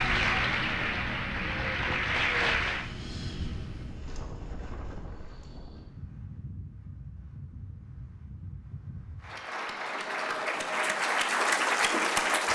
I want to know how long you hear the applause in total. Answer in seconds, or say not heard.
6 s.